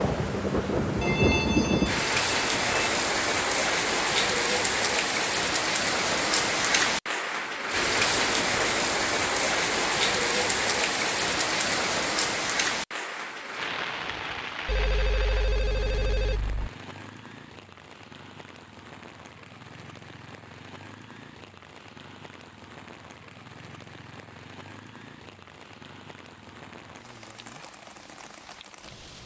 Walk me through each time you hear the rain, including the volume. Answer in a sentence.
The rain can be heard from 0.0 to 29.2 s, getting quieter.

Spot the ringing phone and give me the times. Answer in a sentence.
You can hear the ringing phone from 1.0 to 3.0 s and from 14.7 to 16.7 s.